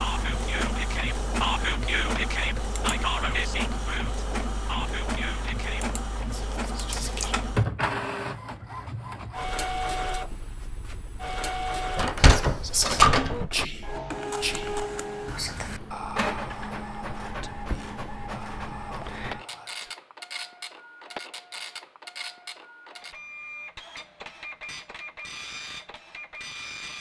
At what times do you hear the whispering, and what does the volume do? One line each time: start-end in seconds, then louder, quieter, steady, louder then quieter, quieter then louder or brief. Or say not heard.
0.0-7.3 quieter
12.2-19.9 quieter.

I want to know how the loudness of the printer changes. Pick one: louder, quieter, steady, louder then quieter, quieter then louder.
quieter.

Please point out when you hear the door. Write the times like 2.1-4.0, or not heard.
11.9-13.7.